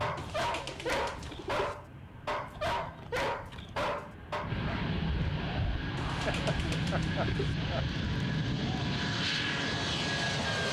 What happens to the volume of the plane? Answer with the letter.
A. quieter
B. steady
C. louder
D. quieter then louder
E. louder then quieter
C.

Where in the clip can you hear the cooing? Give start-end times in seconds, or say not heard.
0.1-1.8, 6.0-7.5.